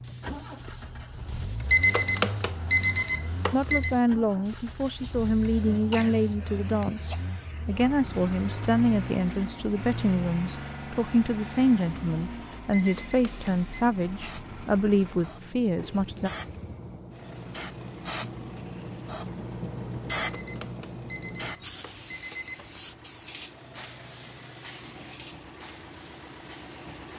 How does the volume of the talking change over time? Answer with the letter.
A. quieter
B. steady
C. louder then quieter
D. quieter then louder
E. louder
B.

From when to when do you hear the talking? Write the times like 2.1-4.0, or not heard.
3.5-16.3.